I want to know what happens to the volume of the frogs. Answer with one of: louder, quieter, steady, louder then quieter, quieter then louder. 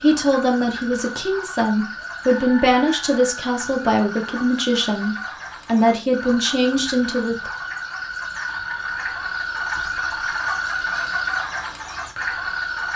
louder.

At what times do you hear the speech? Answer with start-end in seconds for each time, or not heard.
0.0-7.5.